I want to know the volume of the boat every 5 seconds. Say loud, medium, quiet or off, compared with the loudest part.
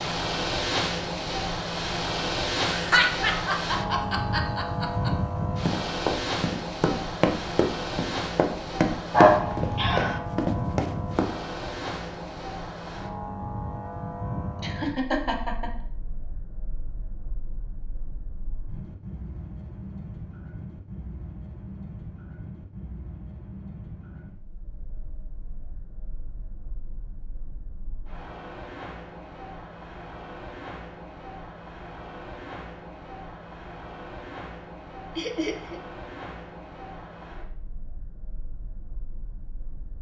loud, loud, medium, quiet, quiet, quiet, quiet, quiet.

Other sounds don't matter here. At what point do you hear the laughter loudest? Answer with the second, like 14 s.
3 s.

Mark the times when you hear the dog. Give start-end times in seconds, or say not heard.
9.1-10.2.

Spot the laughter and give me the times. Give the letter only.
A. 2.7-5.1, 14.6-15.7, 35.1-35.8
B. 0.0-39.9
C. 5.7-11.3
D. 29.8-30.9
A.